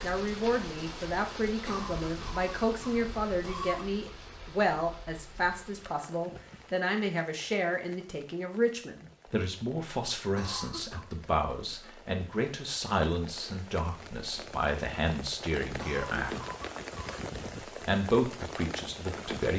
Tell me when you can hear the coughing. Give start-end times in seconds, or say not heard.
1.6-4.0, 10.3-11.1, 15.8-17.1.